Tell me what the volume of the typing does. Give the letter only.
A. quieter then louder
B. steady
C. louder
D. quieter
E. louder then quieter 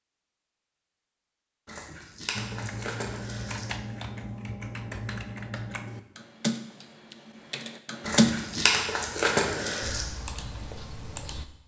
E.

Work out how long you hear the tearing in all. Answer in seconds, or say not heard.
4 s.